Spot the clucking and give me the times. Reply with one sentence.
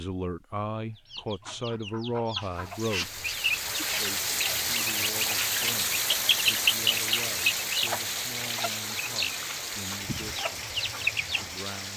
The clucking can be heard from 1.1 to 11.4 s.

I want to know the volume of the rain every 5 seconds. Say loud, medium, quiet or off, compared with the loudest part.
loud, loud, medium.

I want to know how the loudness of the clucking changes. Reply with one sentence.
The volume of the clucking goes up, then down.